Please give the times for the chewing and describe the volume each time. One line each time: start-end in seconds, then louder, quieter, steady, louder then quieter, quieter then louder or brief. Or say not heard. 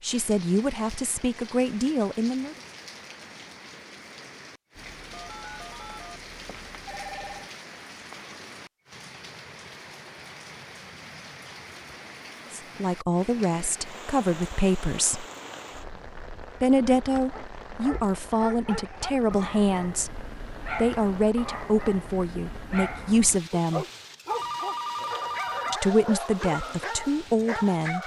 not heard.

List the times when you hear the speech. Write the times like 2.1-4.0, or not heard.
0.0-2.5, 12.5-15.2, 16.6-23.9, 25.7-28.0.